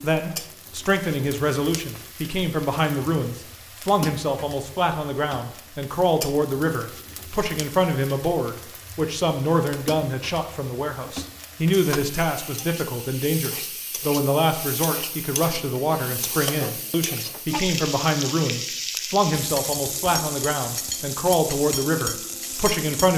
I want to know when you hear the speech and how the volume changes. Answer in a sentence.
The speech can be heard from 0.0 to 23.1 s, at a steady volume.